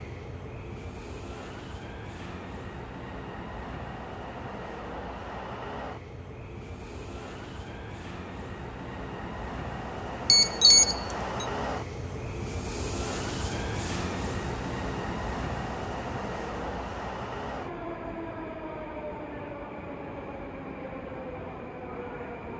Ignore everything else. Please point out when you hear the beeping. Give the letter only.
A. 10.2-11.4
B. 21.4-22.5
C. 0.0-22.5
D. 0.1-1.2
A.